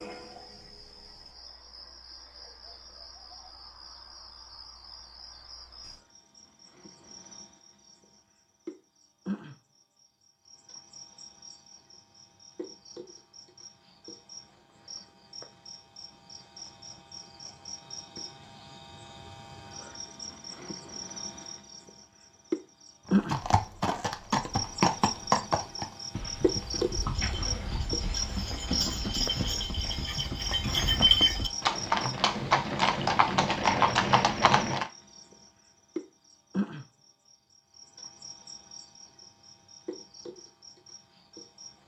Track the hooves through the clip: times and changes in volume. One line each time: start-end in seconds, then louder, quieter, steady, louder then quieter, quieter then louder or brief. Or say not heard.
23.1-34.9 quieter then louder.